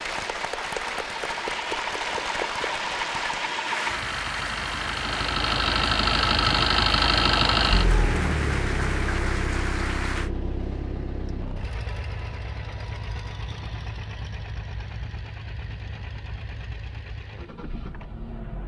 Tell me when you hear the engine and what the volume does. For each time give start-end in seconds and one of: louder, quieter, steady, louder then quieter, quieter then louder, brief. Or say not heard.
0.0-18.6 louder then quieter.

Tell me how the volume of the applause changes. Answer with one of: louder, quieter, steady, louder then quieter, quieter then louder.
steady.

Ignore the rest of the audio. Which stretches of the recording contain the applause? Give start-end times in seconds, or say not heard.
0.0-10.3.